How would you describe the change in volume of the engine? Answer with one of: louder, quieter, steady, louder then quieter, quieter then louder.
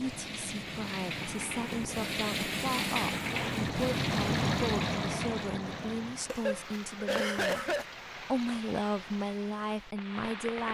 louder then quieter.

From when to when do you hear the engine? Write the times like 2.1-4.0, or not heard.
0.0-6.5.